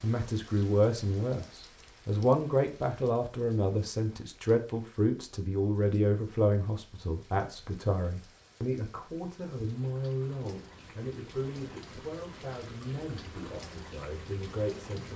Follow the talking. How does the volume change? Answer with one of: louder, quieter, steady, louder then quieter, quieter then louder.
quieter.